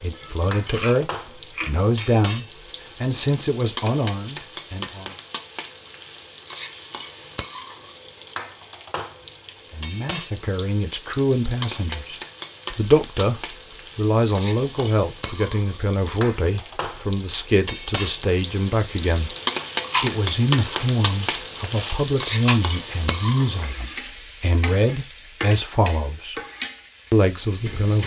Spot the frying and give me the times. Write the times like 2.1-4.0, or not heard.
0.0-28.0.